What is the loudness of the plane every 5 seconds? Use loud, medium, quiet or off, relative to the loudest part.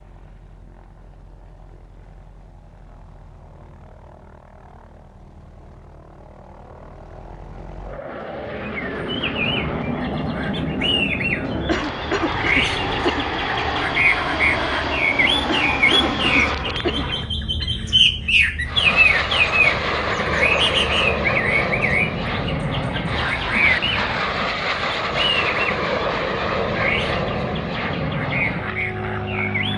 quiet, medium, loud, loud, loud, loud.